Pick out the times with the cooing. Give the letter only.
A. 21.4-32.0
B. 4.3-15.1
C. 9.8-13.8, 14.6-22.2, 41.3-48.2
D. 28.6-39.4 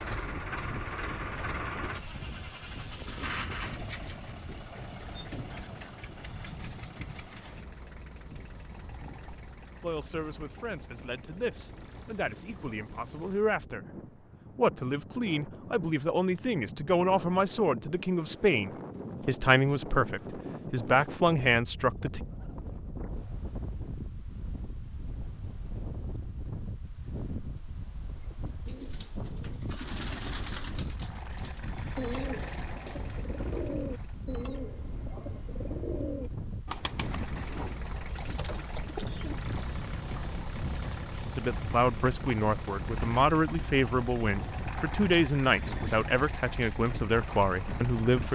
D.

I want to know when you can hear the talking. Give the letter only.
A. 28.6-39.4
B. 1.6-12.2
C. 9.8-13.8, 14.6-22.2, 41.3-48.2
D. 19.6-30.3
C.